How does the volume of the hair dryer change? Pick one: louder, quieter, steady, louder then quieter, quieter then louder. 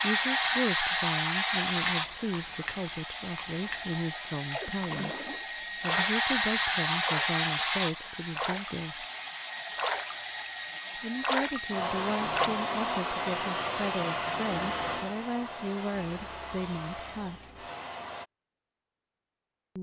quieter.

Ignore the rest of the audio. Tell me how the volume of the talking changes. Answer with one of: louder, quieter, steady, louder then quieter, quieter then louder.
steady.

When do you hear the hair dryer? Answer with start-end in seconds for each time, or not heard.
0.0-18.2.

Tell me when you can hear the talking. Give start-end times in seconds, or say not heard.
0.0-9.1, 10.9-17.6.